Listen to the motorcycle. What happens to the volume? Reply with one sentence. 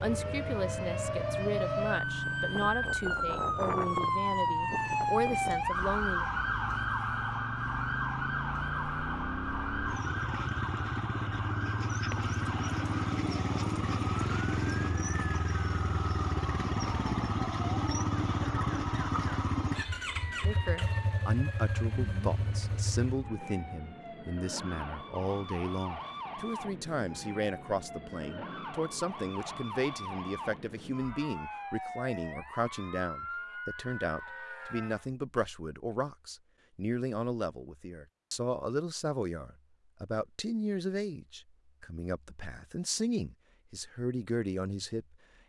The loudness of the motorcycle goes up.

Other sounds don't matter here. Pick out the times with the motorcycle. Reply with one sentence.
The motorcycle can be heard from 0.0 to 23.3 s.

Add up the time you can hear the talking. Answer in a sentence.
You can hear the talking for 31 seconds altogether.